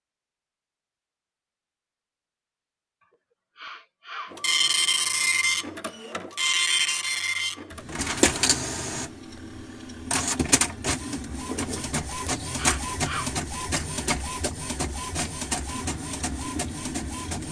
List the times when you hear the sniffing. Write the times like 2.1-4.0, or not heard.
3.5-4.8, 12.6-13.3.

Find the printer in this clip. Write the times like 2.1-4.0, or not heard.
4.3-17.4.